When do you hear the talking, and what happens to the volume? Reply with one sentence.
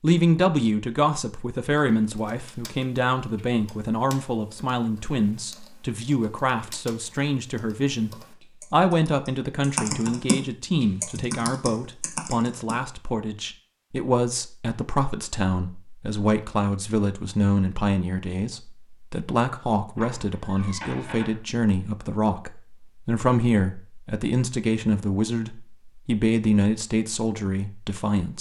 The talking can be heard from 0.0 to 28.3 s, at a steady volume.